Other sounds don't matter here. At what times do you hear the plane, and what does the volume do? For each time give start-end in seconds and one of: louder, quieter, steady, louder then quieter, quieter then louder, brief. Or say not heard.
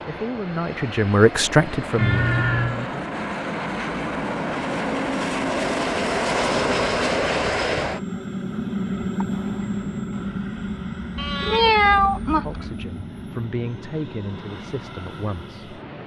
0.0-16.0 louder then quieter.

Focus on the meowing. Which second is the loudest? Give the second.
12 s.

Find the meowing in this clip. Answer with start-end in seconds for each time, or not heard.
1.9-2.8, 11.2-12.8.